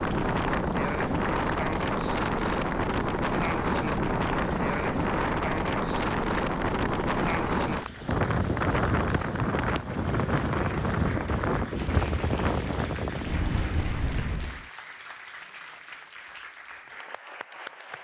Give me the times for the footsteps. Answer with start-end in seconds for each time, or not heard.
not heard.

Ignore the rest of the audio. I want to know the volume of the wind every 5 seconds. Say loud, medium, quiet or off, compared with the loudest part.
loud, loud, loud, off.